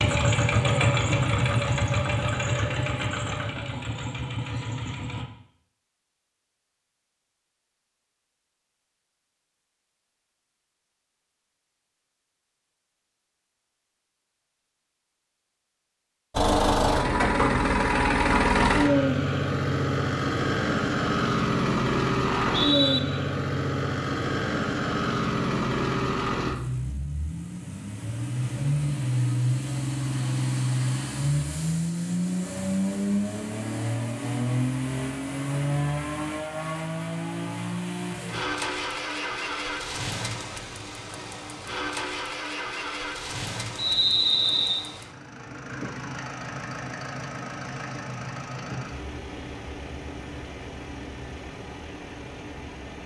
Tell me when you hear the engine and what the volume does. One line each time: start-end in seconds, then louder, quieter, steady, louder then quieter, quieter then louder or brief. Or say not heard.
0.0-5.2 quieter
16.3-53.0 quieter.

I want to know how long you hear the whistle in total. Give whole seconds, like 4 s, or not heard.
2 s.